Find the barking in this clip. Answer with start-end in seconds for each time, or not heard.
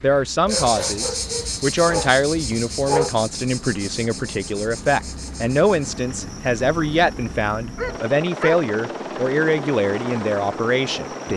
0.5-3.1, 7.8-8.7.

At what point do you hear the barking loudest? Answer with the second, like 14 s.
3 s.